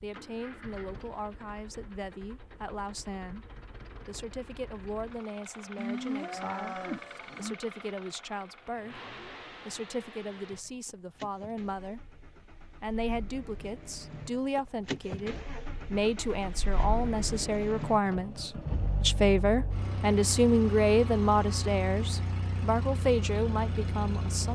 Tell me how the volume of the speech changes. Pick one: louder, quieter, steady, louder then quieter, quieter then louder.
louder.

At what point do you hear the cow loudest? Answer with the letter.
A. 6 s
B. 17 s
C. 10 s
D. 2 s
A.